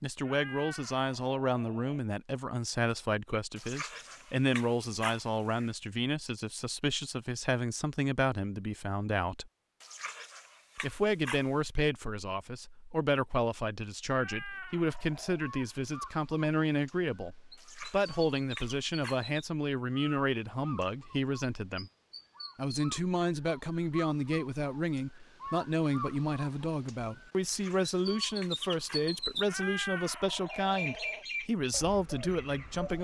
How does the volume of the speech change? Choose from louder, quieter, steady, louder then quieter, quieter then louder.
steady.